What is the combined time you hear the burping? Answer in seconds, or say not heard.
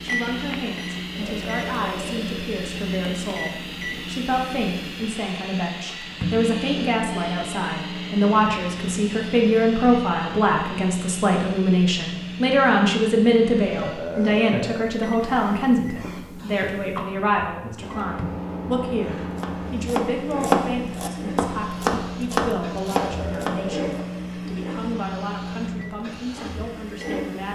4 s.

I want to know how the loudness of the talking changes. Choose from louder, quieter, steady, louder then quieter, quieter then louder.
louder then quieter.